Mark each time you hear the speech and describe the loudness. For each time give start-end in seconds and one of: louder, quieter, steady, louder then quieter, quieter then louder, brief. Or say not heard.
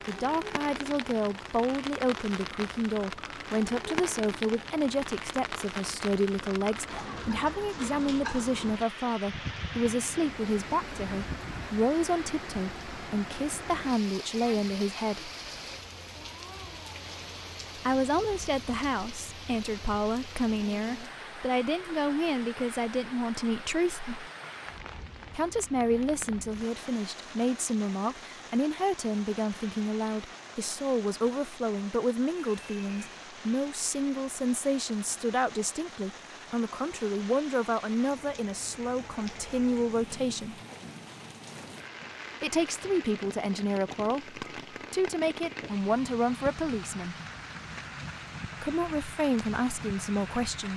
0.1-15.3 steady
17.8-24.3 steady
25.3-40.5 steady
42.4-47.1 steady
48.6-50.7 brief.